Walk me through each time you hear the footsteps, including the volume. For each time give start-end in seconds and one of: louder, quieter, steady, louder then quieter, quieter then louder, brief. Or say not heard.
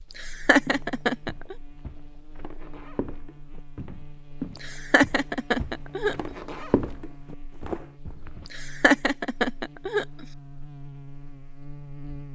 0.7-8.5 louder.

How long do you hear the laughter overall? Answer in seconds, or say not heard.
5 s.